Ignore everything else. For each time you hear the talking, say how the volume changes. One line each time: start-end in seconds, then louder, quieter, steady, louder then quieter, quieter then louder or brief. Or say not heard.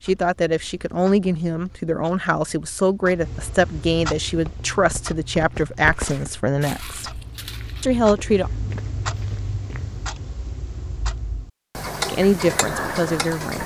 0.1-7.2 steady
7.8-8.5 brief
12.1-13.6 brief.